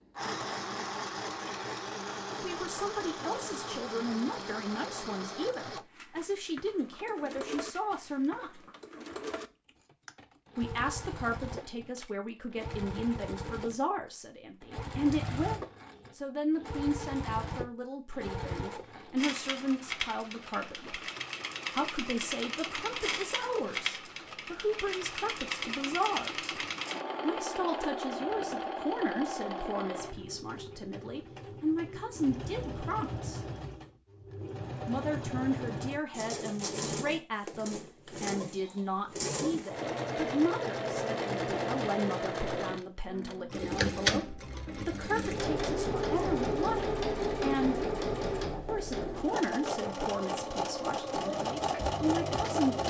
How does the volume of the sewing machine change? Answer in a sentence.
The volume of the sewing machine goes up.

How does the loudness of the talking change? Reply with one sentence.
The volume of the talking stays about the same.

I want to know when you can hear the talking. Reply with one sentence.
You can hear the talking from 2.3 to 8.6 s, from 10.6 to 21.0 s, from 21.7 to 26.5 s, from 27.2 to 33.4 s, from 34.9 to 47.8 s and from 48.6 to 52.8 s.